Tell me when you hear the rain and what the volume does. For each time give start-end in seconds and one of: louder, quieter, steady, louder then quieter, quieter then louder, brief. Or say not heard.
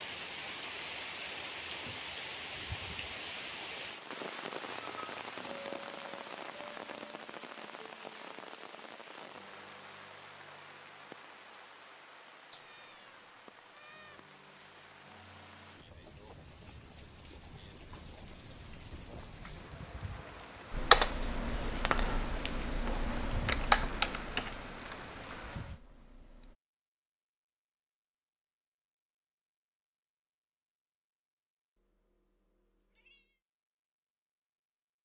0.0-25.8 quieter then louder.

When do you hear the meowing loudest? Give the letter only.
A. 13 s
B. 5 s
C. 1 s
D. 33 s
B.